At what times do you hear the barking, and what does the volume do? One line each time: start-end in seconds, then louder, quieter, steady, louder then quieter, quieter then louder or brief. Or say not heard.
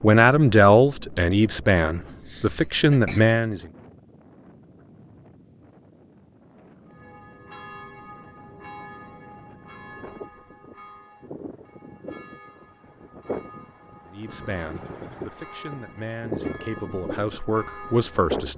not heard.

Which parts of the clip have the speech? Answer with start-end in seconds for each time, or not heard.
0.0-3.6, 14.1-18.5.